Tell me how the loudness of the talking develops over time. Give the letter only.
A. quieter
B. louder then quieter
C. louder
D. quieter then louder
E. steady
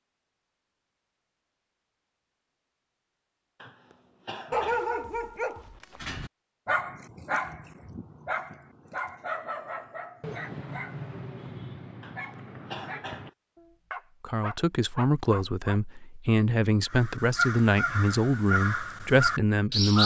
E.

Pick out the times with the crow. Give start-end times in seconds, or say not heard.
16.9-20.0.